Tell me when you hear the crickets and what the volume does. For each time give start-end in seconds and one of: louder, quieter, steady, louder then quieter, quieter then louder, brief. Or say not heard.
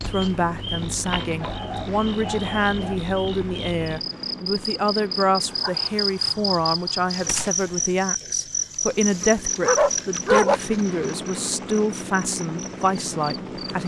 0.0-13.8 louder then quieter.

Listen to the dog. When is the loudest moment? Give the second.
10 s.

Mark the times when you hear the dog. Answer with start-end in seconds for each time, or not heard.
1.4-3.0, 5.5-7.5, 9.6-10.6.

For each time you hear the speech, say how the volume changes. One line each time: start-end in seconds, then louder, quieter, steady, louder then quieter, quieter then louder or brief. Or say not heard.
0.1-13.8 steady.